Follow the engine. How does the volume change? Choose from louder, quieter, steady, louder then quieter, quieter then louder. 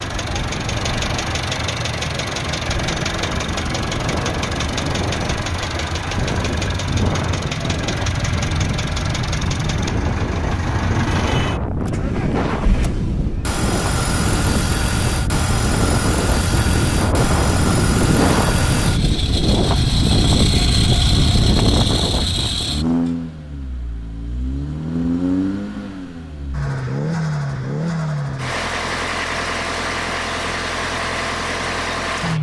steady.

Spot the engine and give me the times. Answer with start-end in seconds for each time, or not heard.
0.0-32.3.